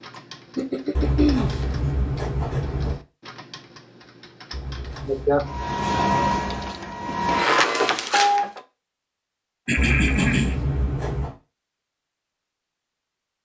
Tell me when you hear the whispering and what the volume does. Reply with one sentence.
The whispering can't be heard in this clip.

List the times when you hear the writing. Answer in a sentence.
The writing can be heard from 0.9 to 3.0 s, from 4.5 to 6.7 s and from 9.8 to 11.3 s.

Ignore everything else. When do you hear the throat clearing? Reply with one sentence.
The throat clearing can be heard from 0.6 to 1.5 s, from 5.0 to 5.5 s and from 9.7 to 10.6 s.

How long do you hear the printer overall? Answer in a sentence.
The printer can be heard for 3 seconds in total.